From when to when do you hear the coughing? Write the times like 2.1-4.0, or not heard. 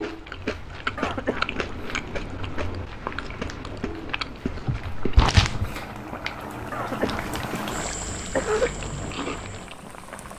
0.9-1.4, 6.7-8.7.